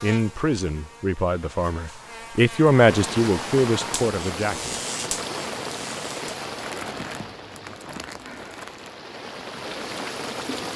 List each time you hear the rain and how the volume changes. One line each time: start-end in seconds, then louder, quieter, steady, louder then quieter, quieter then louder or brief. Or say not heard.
2.9-10.7 quieter then louder.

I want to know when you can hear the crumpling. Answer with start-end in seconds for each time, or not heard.
6.5-8.9.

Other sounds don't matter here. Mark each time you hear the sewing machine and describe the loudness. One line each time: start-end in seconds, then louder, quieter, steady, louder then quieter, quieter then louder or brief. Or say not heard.
not heard.